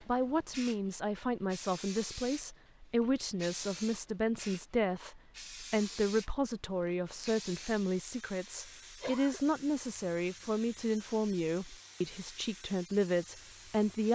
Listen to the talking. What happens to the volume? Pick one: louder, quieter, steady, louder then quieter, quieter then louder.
steady.